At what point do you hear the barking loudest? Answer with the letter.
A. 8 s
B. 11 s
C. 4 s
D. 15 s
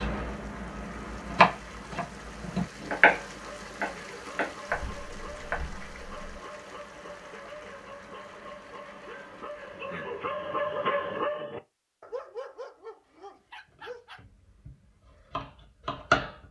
B.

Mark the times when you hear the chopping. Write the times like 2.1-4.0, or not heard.
0.0-6.4, 13.7-16.4.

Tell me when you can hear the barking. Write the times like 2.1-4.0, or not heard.
3.2-14.2.